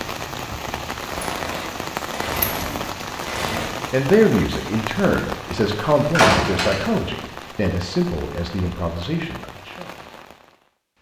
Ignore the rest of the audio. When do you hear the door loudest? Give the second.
6 s.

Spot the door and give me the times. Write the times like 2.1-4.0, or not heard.
1.1-3.7, 6.0-7.0.